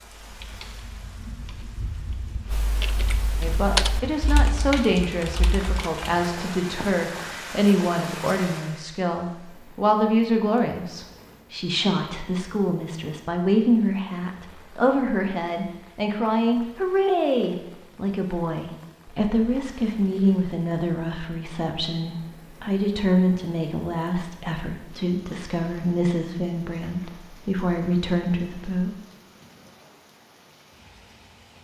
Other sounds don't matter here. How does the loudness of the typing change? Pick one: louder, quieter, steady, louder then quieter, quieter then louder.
louder then quieter.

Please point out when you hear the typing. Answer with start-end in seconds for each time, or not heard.
0.2-6.1.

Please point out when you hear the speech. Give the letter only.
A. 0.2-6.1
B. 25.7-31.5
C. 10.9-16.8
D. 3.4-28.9
D.